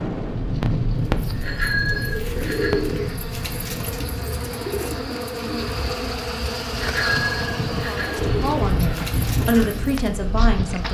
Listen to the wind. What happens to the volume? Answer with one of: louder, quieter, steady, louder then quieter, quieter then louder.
quieter then louder.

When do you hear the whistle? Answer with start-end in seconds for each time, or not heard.
not heard.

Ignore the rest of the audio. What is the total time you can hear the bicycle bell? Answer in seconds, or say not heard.
3 s.